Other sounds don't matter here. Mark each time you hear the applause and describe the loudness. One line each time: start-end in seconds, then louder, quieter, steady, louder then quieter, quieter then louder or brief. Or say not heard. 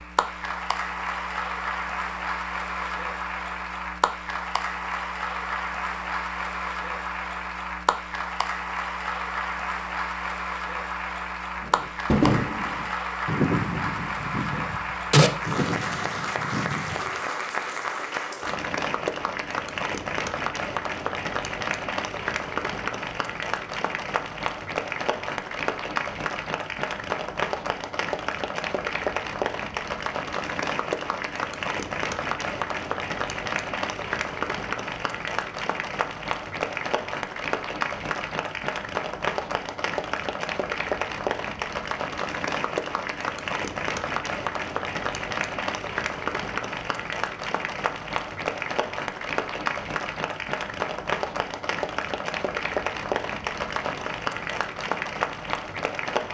0.0-56.2 steady.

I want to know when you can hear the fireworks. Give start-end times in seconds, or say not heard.
11.6-16.9.